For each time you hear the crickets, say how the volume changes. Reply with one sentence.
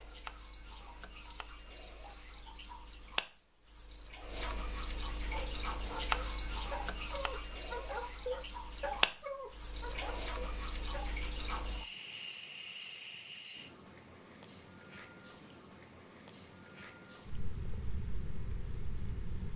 You can hear the crickets from 0.0 to 19.5 s, getting louder.